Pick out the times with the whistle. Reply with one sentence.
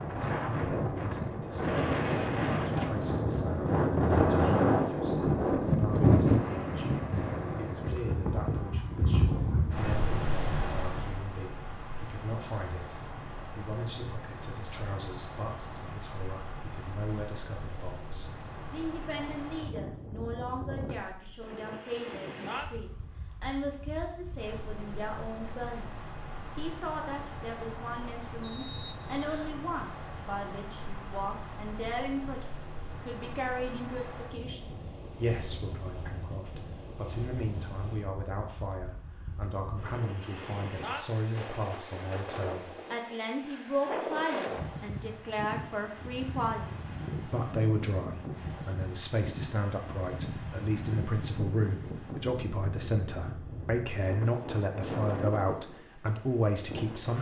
The whistle can be heard from 28.4 to 29.6 s.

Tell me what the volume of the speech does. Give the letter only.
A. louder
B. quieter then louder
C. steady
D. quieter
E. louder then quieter
A.